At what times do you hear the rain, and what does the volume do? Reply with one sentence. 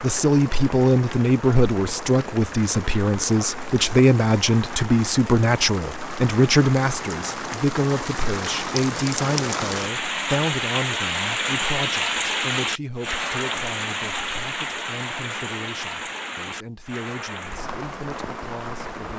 The rain can be heard from 0.0 to 19.1 s, getting louder then quieter.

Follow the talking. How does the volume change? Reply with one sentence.
The volume of the talking goes down.